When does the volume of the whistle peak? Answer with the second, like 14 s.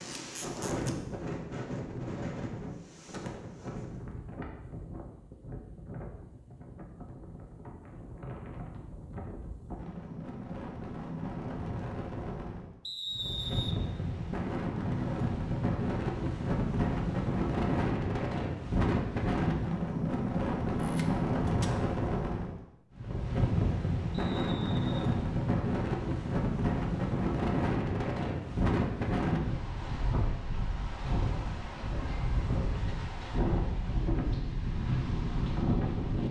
13 s.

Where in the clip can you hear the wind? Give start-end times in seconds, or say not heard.
0.0-36.2.